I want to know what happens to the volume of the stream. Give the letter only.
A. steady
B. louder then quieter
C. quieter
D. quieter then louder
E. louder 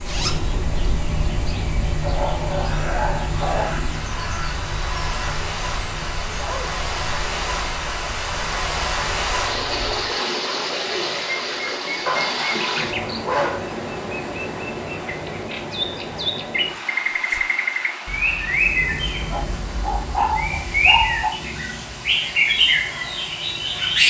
B.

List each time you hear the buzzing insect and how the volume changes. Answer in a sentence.
The buzzing insect can't be heard in this clip.